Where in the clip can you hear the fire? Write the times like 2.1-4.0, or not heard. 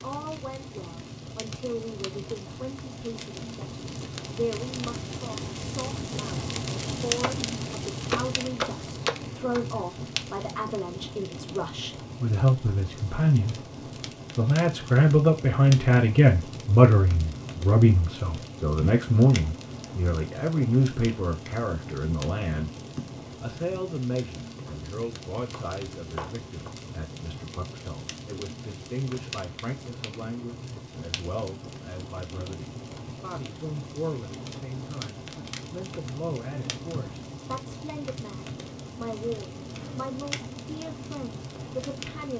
0.0-42.3.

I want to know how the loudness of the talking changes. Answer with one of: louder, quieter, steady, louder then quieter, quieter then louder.
louder then quieter.